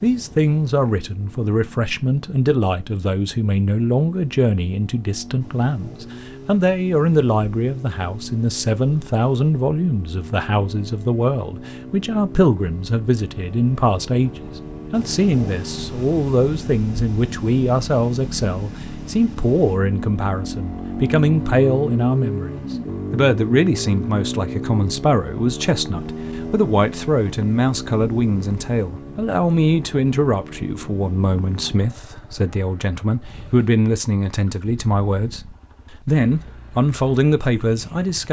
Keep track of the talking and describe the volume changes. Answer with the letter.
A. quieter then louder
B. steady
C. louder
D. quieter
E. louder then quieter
B.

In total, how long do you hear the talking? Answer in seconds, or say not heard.
38 s.